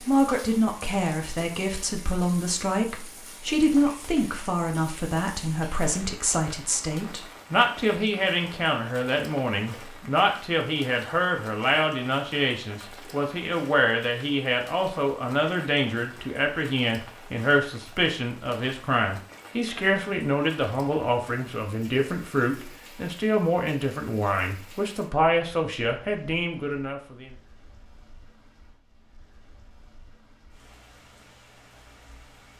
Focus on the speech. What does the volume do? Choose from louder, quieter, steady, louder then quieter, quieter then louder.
steady.